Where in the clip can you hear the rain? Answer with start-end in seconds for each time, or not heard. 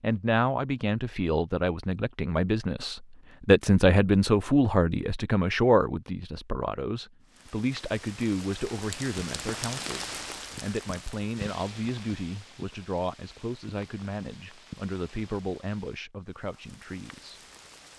7.2-17.9.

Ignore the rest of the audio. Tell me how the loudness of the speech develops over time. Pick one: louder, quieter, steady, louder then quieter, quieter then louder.
quieter.